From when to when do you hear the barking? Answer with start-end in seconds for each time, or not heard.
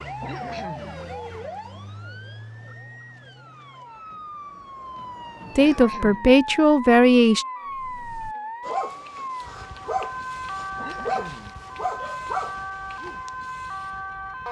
7.7-13.3.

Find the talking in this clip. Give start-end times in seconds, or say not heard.
5.5-7.5.